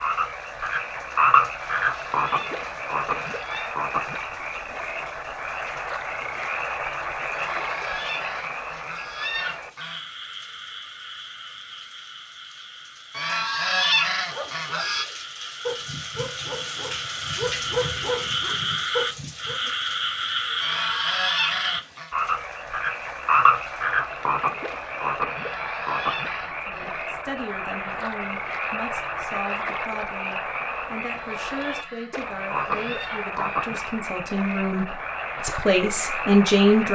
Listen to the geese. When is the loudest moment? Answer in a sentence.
The volume of the geese peaks at 14 seconds.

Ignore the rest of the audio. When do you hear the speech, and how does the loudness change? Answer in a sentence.
The speech can be heard from 26.6 to 36.9 s, getting louder.